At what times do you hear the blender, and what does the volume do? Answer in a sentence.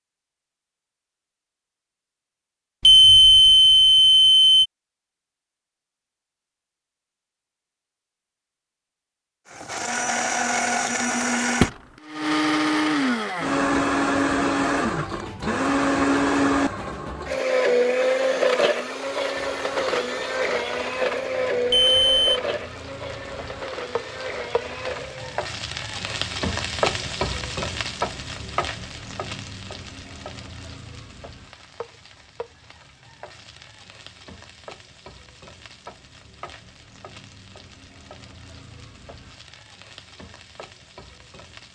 You can hear the blender from 9.5 to 25.4 s, getting quieter.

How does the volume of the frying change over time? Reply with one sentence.
The loudness of the frying goes up, then down.